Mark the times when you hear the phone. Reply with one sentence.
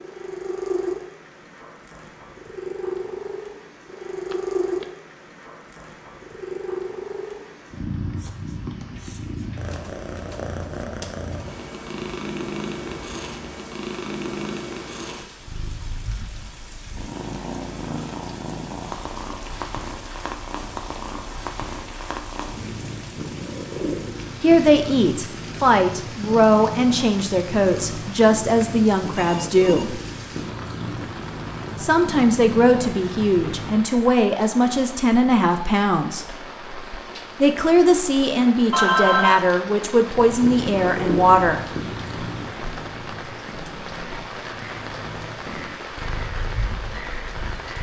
You can hear the phone from 4.3 to 4.9 s, from 29.1 to 29.9 s and from 38.7 to 39.4 s.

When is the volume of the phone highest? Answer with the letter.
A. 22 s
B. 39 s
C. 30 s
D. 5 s
B.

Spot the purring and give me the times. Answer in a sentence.
You can hear the purring from 0.0 to 33.9 s and from 40.0 to 47.7 s.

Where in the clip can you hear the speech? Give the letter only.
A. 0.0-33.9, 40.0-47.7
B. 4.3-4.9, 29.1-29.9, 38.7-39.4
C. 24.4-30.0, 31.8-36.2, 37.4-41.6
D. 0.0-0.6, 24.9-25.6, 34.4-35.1
C.